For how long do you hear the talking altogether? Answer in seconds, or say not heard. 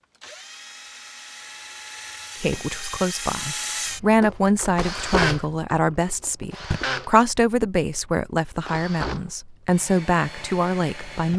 9 s.